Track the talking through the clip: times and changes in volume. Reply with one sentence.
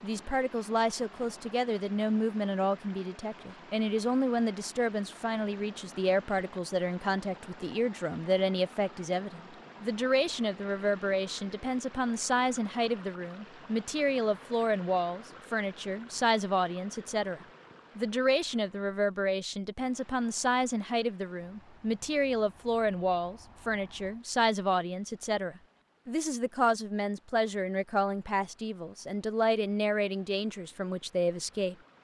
You can hear the talking from 0.0 to 31.8 s, at a steady volume.